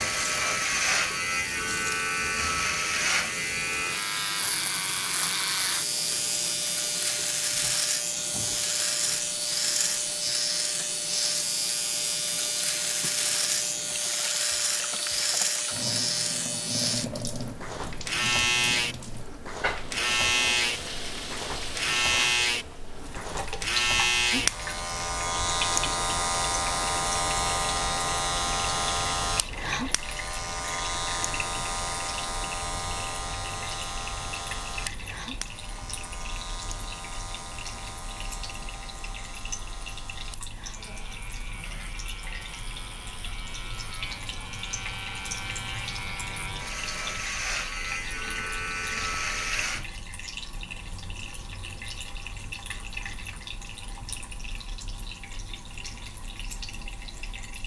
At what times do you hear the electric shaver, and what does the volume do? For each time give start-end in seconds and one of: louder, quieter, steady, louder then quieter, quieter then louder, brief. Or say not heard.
0.0-49.9 quieter.